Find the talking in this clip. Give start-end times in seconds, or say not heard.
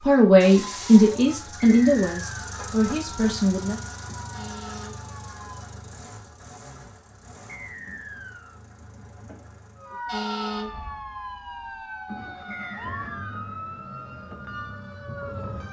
0.0-3.8.